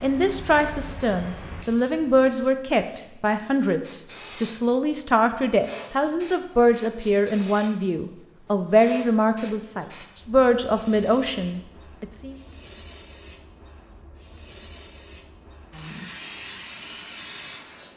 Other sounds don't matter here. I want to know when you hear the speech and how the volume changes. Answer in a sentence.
The speech can be heard from 0.0 to 12.3 s, at a steady volume.